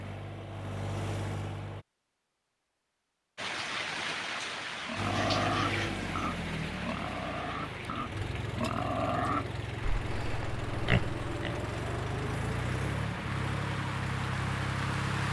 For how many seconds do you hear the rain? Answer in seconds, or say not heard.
12 s.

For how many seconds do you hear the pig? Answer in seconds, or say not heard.
7 s.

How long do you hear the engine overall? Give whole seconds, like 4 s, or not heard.
12 s.